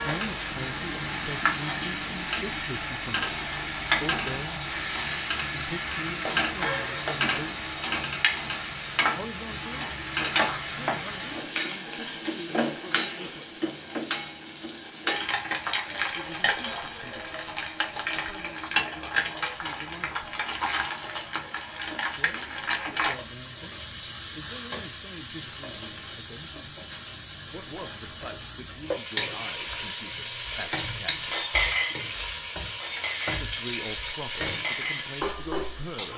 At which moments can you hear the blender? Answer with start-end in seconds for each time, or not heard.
not heard.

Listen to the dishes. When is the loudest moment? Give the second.
32 s.